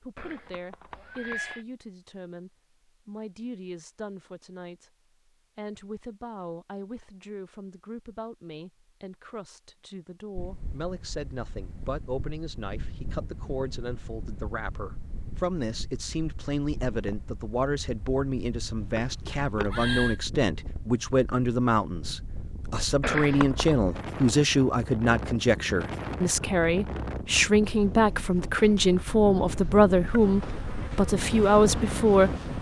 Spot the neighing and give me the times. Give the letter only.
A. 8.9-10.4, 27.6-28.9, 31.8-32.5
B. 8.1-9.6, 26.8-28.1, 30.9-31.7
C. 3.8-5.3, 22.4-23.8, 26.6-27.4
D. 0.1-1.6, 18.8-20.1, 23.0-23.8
D.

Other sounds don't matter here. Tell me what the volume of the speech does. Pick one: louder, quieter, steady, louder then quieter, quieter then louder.
louder.